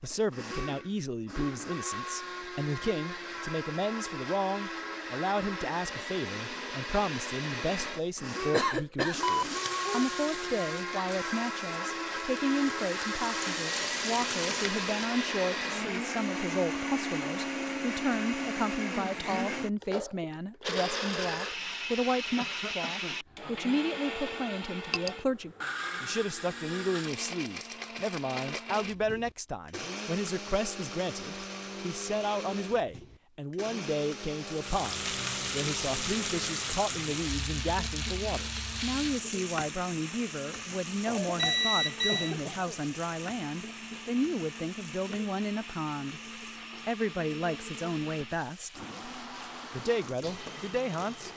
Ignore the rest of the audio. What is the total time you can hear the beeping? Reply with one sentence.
The beeping can be heard for 2 seconds in total.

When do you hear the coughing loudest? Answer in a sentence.
The volume of the coughing peaks at 9 seconds.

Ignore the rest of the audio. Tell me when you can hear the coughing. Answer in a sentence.
You can hear the coughing from 8.5 to 9.2 s, from 22.4 to 23.2 s and from 41.0 to 42.9 s.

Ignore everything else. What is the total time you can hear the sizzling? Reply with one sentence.
The sizzling can be heard for 23 seconds in total.